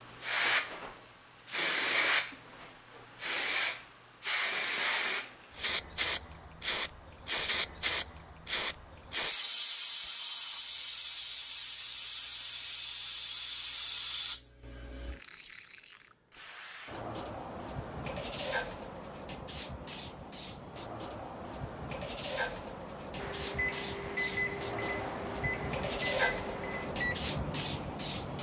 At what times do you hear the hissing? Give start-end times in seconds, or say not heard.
0.0-28.3.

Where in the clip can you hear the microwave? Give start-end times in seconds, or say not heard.
23.1-28.3.